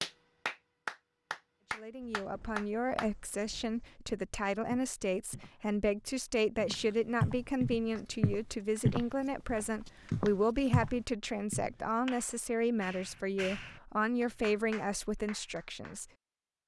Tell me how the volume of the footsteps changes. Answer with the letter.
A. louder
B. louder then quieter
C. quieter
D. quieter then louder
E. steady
A.